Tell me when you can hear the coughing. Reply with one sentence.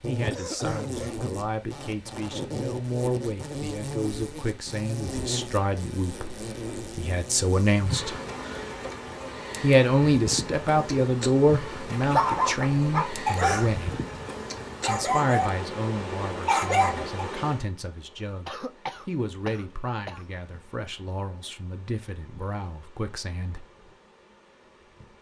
You can hear the coughing from 0.1 to 1.2 s, from 13.4 to 13.8 s and from 18.4 to 20.2 s.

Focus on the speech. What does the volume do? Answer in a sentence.
The volume of the speech goes up, then down.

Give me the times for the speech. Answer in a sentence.
The speech can be heard from 0.0 to 8.2 s, from 9.6 to 14.0 s and from 14.8 to 23.6 s.